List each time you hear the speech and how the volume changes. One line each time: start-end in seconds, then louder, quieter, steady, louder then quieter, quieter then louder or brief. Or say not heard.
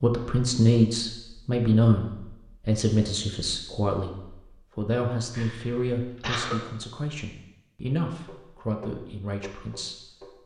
0.0-10.4 quieter.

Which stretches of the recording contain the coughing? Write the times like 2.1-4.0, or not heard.
5.3-6.6.